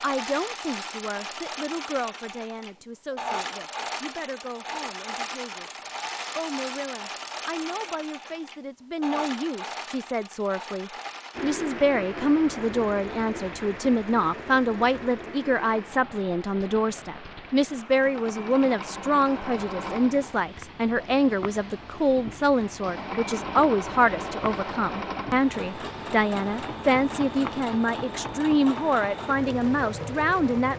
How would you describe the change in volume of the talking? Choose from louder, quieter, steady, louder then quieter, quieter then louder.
louder.